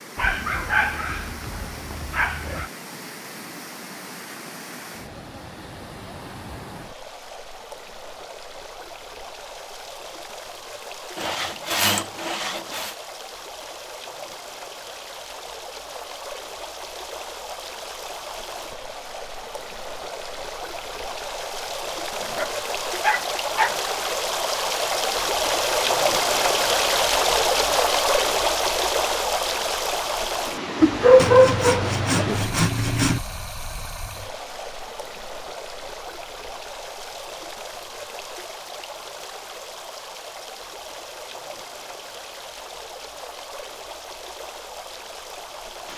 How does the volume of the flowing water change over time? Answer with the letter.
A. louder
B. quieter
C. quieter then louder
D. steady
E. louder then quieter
E.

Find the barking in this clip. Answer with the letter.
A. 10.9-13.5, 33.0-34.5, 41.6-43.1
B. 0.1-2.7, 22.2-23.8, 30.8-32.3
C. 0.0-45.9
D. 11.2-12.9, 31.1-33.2
B.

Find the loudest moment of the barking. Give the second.
31 s.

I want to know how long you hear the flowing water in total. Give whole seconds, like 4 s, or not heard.
46 s.